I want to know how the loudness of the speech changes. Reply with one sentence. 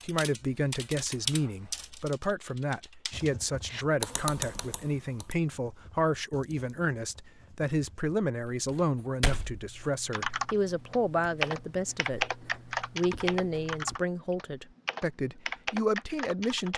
The loudness of the speech stays about the same.